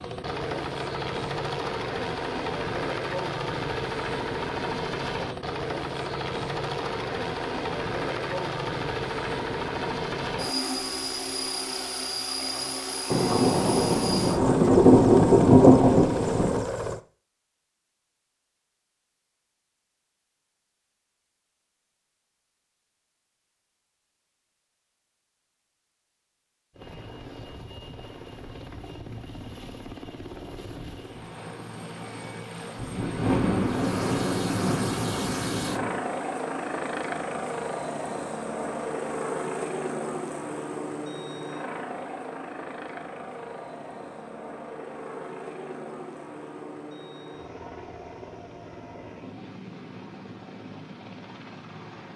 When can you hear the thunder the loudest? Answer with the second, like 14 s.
16 s.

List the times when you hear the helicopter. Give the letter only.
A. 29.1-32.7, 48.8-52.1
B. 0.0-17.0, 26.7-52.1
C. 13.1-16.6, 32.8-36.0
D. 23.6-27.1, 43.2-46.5
B.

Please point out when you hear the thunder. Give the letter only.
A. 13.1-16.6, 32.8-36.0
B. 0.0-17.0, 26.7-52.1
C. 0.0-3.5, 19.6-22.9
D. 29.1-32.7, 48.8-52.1
A.